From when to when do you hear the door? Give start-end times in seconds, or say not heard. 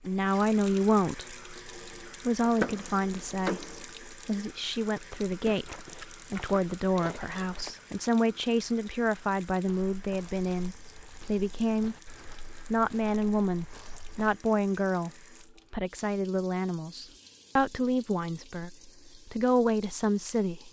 2.4-3.9.